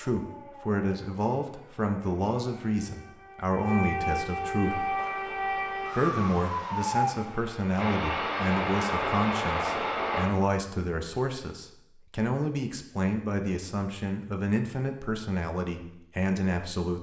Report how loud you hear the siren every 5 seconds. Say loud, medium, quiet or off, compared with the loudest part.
medium, loud, off, off.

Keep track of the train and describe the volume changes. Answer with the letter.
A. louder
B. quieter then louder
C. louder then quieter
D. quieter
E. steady
A.